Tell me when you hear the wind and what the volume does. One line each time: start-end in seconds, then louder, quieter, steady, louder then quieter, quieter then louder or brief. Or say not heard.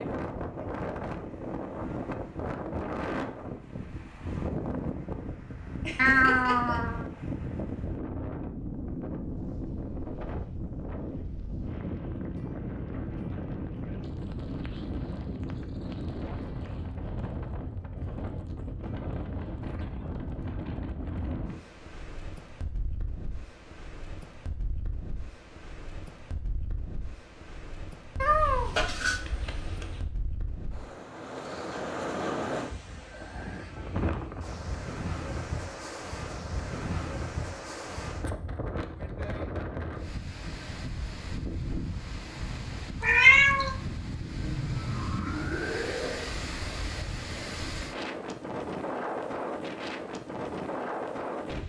0.0-51.6 quieter then louder.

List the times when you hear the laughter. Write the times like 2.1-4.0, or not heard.
5.8-6.8, 44.4-46.2.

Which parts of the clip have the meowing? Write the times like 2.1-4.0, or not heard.
6.0-7.0, 28.2-30.1, 43.0-43.8.